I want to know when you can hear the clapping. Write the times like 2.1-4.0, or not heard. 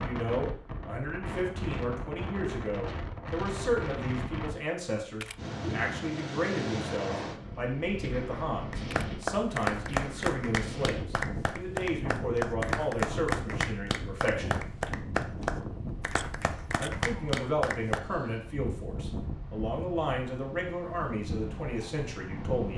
8.7-18.0.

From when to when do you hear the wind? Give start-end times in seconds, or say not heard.
0.0-22.7.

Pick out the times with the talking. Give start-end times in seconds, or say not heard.
0.0-14.6, 16.8-22.7.